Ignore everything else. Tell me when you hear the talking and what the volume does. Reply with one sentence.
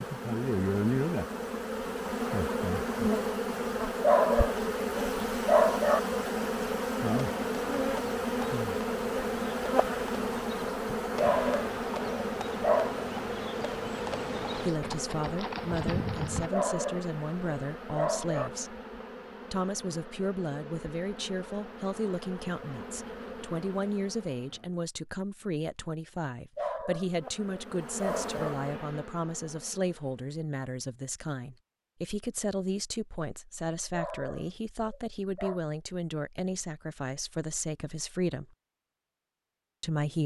You can hear the talking from 14.6 to 18.8 s, at a steady volume; from 19.5 to 38.5 s, at a steady volume; and briefly from 39.8 to 40.2 s.